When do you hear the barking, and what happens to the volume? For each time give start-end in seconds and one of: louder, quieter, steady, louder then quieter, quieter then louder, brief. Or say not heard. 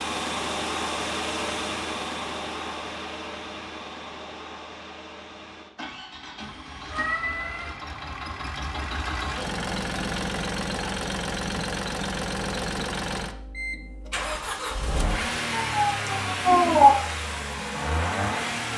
not heard.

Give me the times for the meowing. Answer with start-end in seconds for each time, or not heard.
6.4-7.8, 15.5-17.1.